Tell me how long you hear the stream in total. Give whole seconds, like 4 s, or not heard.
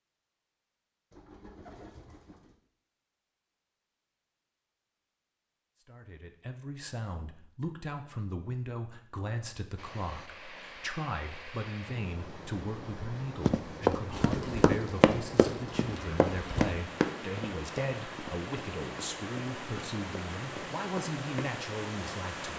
13 s.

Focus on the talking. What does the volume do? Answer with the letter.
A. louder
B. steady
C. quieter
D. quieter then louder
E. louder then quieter
B.